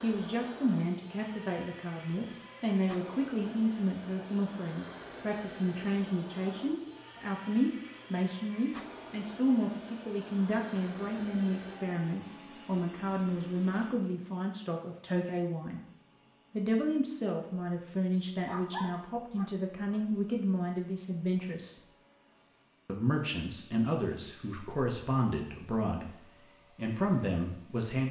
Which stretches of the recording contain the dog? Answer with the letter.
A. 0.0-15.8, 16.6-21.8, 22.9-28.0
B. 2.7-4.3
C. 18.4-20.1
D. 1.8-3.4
C.